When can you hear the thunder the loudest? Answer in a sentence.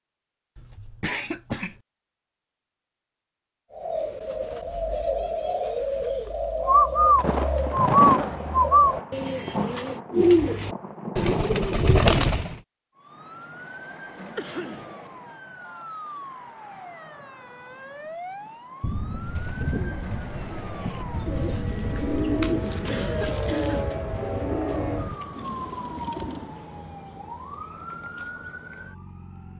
The volume of the thunder peaks at 8 seconds.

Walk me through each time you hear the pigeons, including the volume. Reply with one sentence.
You can hear the pigeons from 3.8 to 12.6 s, getting louder; and from 19.2 to 26.6 s, getting louder then quieter.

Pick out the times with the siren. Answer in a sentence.
The siren can be heard from 12.9 to 29.5 s.